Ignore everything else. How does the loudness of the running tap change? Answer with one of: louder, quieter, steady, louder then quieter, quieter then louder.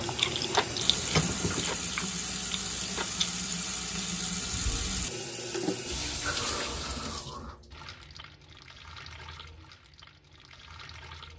quieter.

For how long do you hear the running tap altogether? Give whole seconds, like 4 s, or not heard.
11 s.